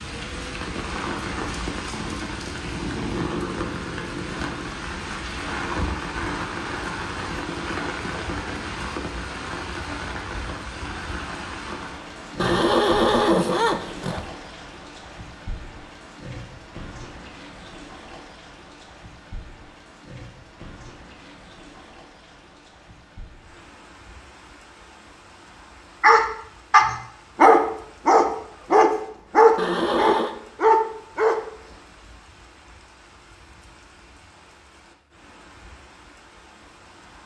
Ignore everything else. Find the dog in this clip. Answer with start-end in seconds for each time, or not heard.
26.0-31.4.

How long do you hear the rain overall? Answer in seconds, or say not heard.
37 s.